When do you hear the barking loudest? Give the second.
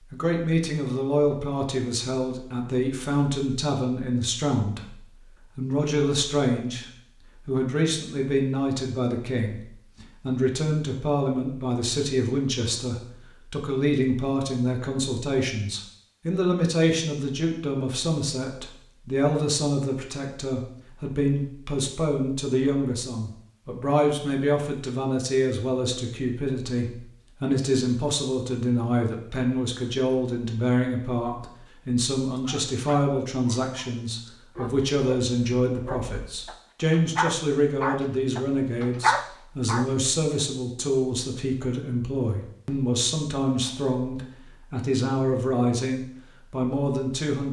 39 s.